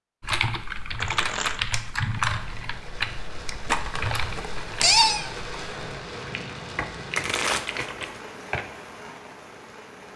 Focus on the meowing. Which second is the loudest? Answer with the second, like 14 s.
5 s.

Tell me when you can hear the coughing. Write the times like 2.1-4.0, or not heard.
not heard.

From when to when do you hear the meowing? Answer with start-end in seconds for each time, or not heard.
3.6-5.3.